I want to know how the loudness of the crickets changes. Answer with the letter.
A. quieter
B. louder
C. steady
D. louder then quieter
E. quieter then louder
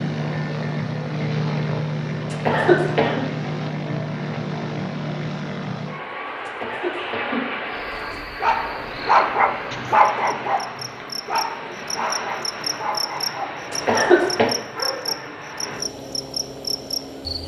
B.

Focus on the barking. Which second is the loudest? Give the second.
9 s.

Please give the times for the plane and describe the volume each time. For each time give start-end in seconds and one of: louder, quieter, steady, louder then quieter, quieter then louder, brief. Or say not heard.
0.0-17.4 quieter.